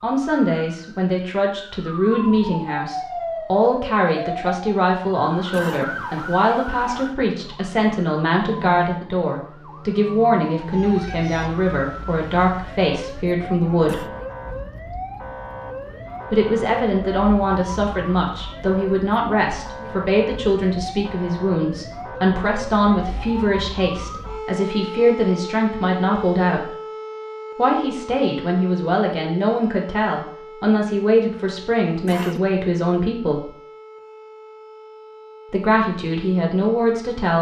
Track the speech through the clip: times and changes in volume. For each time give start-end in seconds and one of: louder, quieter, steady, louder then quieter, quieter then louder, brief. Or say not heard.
0.0-14.1 steady
16.3-26.7 steady
27.6-33.5 steady
35.5-37.3 brief.